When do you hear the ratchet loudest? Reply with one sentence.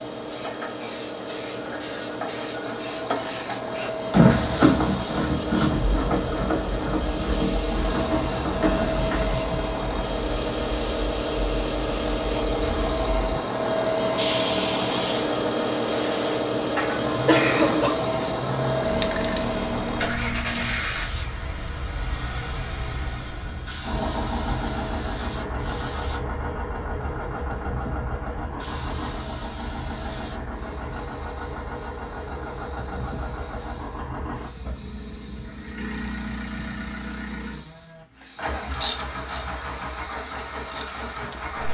The loudest moment of the ratchet is at 4 seconds.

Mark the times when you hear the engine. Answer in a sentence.
You can hear the engine from 0.0 to 41.6 s.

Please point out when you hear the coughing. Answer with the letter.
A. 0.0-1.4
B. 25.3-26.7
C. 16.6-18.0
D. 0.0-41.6
C.